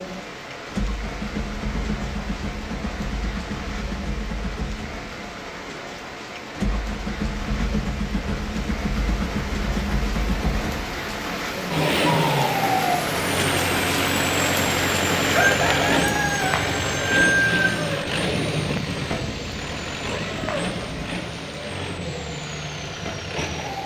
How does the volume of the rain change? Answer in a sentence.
The loudness of the rain goes up, then down.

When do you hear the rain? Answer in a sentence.
The rain can be heard from 0.0 to 23.8 s.